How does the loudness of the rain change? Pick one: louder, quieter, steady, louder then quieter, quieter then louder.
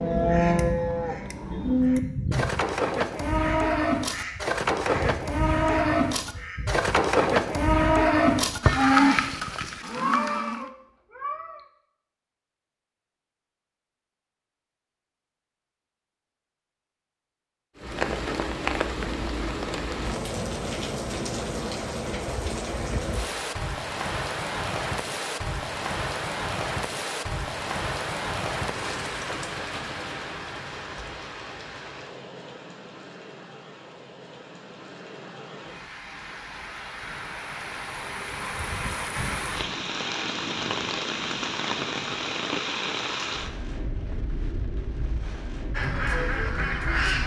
quieter then louder.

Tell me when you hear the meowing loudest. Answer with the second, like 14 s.
10 s.